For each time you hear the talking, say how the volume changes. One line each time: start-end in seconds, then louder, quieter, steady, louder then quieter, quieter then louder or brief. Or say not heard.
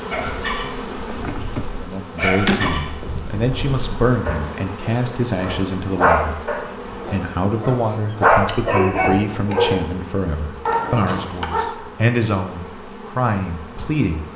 1.7-14.2 steady.